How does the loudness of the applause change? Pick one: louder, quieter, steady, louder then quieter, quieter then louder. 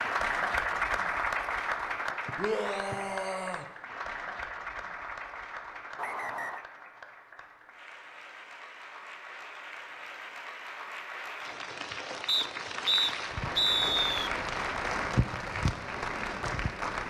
quieter then louder.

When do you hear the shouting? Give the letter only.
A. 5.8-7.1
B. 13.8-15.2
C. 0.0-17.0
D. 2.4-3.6
D.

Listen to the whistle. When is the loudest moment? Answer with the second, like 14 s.
14 s.